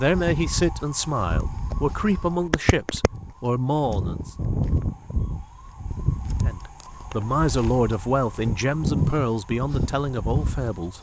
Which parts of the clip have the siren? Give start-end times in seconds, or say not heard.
0.0-10.9.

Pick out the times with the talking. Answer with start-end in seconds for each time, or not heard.
0.0-4.3, 6.4-10.9.